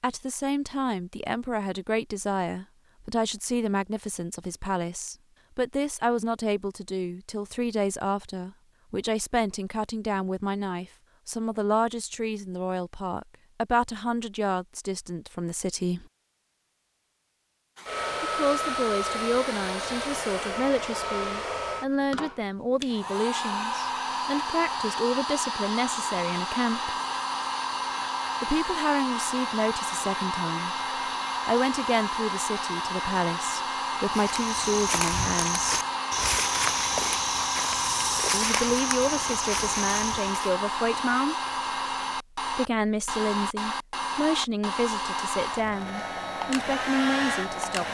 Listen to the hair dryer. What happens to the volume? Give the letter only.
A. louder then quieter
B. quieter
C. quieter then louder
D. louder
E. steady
E.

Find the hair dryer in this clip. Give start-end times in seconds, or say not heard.
17.8-47.9.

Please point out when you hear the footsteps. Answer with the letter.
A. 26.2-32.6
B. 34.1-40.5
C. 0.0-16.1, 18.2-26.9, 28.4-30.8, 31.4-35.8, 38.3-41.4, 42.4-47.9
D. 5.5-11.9
B.